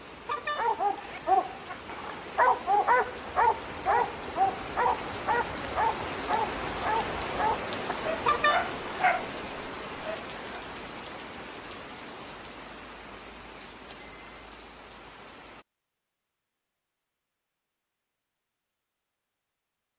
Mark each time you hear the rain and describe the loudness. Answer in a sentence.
The rain can be heard from 0.0 to 15.7 s, getting louder then quieter.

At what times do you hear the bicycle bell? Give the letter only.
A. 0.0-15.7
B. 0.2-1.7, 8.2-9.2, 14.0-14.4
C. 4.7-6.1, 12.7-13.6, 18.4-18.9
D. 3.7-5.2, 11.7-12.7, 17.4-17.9
B.